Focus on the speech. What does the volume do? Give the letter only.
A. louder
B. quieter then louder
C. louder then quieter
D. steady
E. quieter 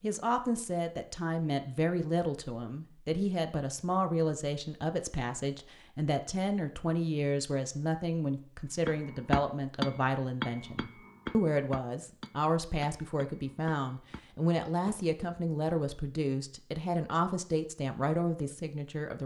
D.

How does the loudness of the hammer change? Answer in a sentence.
The loudness of the hammer goes down.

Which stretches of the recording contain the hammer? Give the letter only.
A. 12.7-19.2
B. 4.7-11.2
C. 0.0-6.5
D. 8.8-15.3
D.